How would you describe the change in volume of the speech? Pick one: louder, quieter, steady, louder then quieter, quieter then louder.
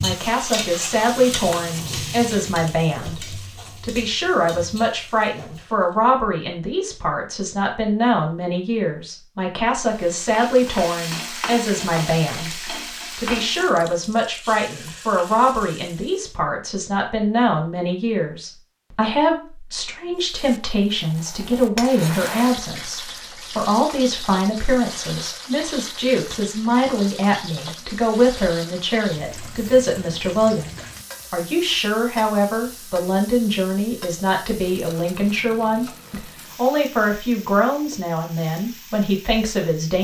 steady.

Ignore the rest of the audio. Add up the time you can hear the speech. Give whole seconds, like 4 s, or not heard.
40 s.